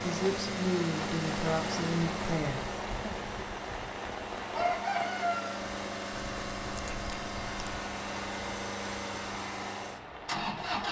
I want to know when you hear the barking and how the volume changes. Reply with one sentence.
You can't hear the barking here.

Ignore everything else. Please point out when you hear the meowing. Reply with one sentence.
You can hear the meowing from 6.1 to 7.8 s.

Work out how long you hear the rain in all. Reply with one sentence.
You can hear the rain for 11 seconds altogether.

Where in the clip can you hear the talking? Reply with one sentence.
You can hear the talking from 0.0 to 3.1 s.